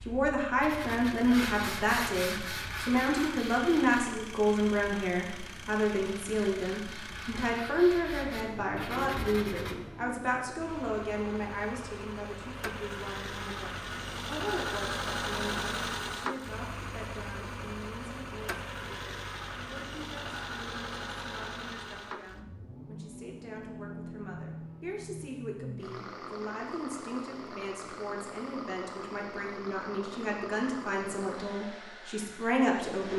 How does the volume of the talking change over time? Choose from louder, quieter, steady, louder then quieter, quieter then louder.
quieter then louder.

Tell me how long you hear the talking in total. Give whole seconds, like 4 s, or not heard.
33 s.